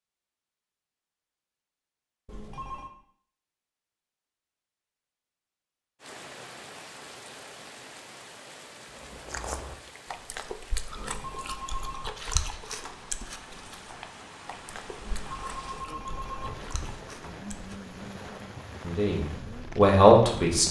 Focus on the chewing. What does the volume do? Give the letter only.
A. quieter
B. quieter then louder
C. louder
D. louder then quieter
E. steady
A.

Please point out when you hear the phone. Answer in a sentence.
You can hear the phone from 2.2 to 2.9 s, from 10.9 to 12.1 s and from 15.0 to 17.1 s.